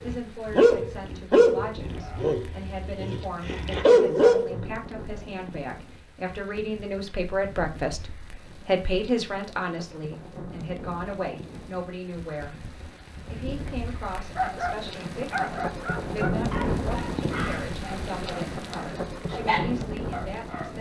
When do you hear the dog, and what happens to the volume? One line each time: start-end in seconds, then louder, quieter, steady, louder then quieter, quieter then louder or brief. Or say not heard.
0.0-4.7 quieter then louder
14.3-20.7 quieter then louder.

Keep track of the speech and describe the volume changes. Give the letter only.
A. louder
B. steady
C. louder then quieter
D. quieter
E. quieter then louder
C.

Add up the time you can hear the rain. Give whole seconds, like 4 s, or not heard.
21 s.